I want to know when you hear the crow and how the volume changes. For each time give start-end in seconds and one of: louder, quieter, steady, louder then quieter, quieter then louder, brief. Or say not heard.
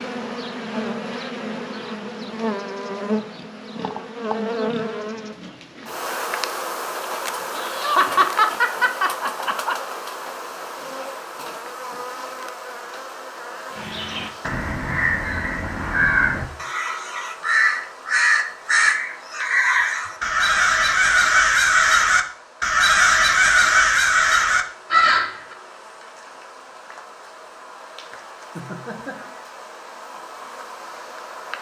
13.7-25.6 louder.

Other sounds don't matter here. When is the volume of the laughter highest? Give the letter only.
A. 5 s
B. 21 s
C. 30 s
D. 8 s
D.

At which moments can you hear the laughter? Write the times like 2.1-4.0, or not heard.
7.5-9.8, 28.6-29.4.